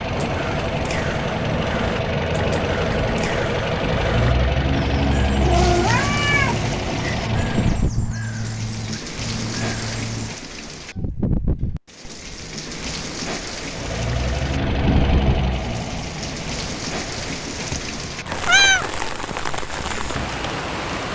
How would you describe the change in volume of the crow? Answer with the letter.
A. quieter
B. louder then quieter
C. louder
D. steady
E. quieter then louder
D.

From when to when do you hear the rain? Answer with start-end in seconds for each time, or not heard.
5.5-21.1.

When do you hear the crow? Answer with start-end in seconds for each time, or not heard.
0.1-10.3.